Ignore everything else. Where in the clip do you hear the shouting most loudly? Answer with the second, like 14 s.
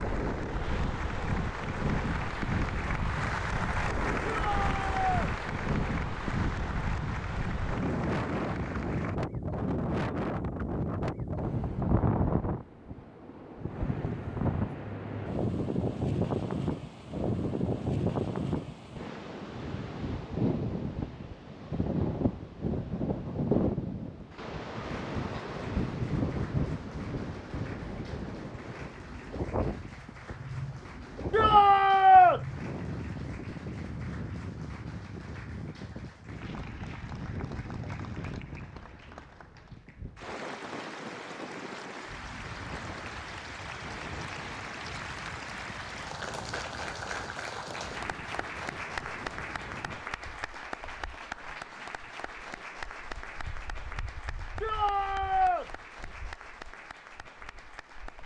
32 s.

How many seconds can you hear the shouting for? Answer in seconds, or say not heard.
3 s.